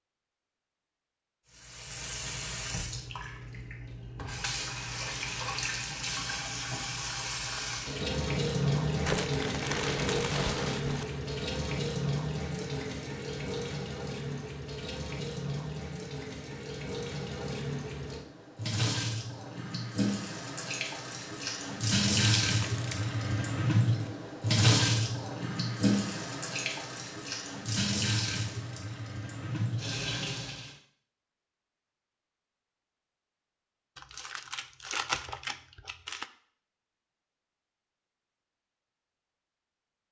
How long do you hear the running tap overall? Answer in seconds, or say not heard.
29 s.